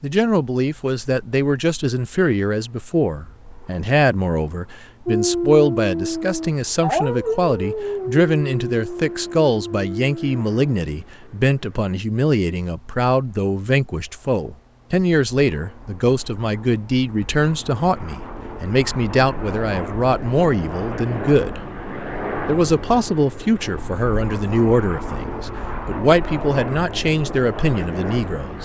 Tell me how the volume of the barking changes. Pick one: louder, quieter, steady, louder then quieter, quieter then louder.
quieter.